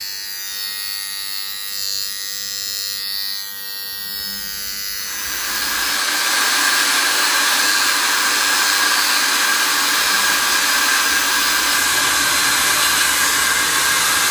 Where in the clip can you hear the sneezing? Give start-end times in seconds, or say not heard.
not heard.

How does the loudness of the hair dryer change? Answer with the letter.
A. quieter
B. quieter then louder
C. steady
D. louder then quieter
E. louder
C.